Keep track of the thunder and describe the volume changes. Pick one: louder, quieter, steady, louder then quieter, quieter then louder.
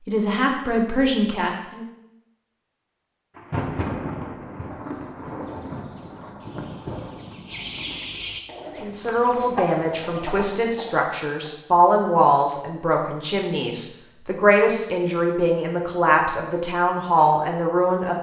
quieter.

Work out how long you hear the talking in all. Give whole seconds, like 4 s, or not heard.
11 s.